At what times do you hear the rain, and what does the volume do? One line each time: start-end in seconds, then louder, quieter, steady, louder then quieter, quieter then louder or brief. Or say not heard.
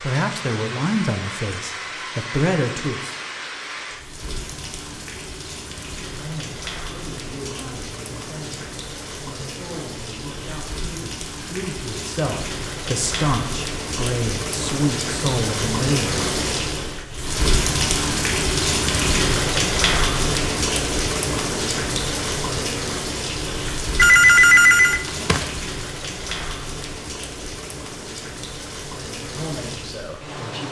0.0-30.6 louder then quieter.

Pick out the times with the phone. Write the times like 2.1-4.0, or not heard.
23.9-25.5.